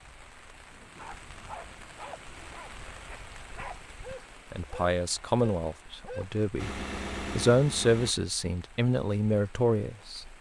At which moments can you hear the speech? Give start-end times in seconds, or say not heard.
4.5-10.3.